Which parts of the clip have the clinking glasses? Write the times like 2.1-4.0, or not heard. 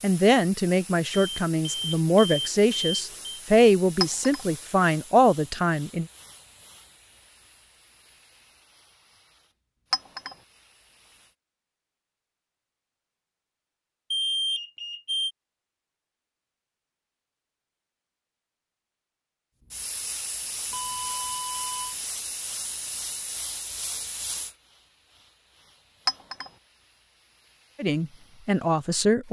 4.0-4.5, 9.9-10.3, 26.1-26.5.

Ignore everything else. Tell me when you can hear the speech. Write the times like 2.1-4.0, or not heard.
0.0-6.0, 27.8-29.2.